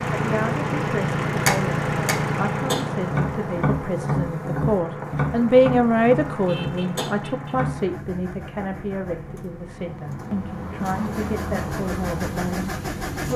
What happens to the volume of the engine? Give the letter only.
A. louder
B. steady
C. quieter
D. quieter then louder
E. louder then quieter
D.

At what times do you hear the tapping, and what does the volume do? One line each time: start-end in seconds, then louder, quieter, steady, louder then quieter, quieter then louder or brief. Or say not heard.
1.4-7.8 quieter.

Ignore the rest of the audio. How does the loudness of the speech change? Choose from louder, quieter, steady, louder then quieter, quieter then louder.
louder then quieter.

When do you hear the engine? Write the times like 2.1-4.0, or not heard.
0.0-13.3.